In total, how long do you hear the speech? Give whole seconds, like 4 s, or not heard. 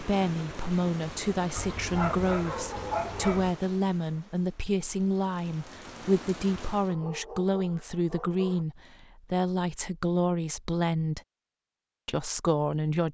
12 s.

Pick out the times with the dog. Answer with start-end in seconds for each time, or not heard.
1.6-3.5, 6.8-8.7.